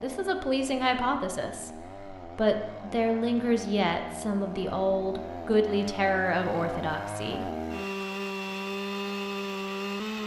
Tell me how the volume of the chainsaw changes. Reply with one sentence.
The volume of the chainsaw goes up.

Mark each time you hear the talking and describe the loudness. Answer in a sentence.
The talking can be heard from 0.0 to 7.5 s, at a steady volume.